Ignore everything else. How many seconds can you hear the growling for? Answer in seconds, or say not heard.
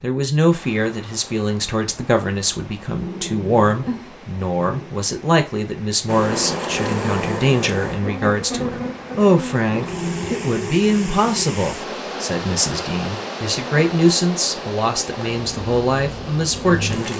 2 s.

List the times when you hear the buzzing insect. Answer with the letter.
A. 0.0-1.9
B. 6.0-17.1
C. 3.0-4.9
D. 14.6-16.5
B.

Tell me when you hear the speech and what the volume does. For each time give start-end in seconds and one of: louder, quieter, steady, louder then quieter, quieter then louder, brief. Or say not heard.
0.0-17.1 steady.